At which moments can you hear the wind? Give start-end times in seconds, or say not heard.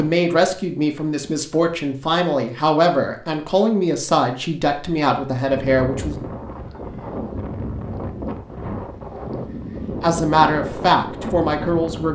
5.5-12.1.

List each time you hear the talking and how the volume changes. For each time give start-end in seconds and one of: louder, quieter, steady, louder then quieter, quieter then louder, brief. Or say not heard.
0.0-6.2 steady
10.0-12.1 brief.